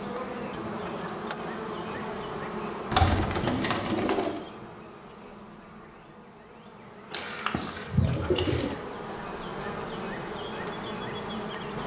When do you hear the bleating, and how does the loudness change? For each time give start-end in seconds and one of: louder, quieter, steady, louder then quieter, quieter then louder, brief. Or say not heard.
not heard.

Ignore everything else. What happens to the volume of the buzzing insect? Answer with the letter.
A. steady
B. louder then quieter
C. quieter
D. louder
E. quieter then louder
E.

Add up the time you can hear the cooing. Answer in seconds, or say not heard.
3 s.